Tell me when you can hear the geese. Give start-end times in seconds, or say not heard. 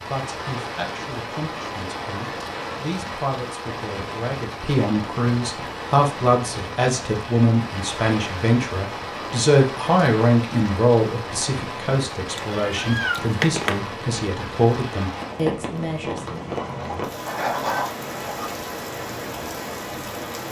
16.4-18.5.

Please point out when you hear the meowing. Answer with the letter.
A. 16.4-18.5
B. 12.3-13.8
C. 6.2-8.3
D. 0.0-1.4
B.